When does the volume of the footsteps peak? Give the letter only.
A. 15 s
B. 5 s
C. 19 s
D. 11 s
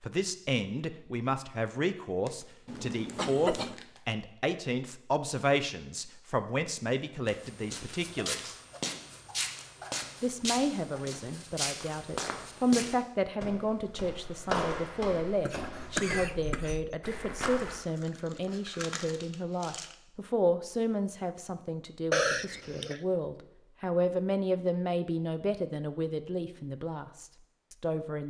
A.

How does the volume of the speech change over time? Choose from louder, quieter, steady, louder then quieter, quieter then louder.
steady.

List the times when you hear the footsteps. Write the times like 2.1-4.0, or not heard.
7.2-17.8.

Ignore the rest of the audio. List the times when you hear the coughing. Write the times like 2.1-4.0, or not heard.
2.6-3.8, 15.4-16.9, 22.1-23.0.